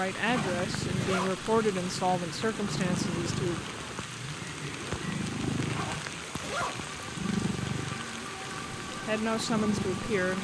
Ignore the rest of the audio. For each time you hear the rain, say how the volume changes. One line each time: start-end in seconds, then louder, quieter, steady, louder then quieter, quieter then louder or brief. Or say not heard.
0.0-10.3 steady.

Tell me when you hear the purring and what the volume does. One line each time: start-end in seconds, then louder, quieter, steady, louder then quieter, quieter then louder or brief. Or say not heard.
0.1-10.3 steady.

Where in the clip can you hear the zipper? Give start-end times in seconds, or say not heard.
0.1-1.4, 5.5-6.8.